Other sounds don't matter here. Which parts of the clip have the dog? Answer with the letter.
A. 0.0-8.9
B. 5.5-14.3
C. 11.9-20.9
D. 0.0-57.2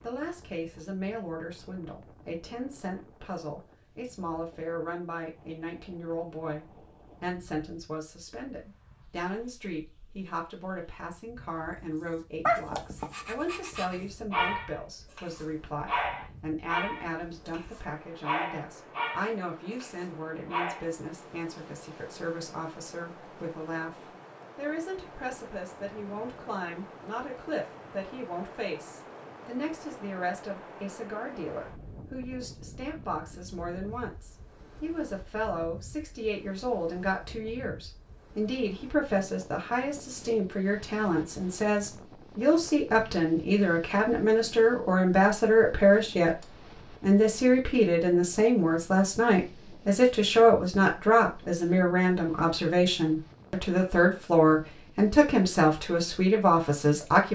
C.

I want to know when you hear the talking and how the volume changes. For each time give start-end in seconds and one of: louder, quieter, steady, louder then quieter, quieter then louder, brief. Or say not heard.
0.0-57.2 louder.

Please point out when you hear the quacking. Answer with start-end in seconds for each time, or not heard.
not heard.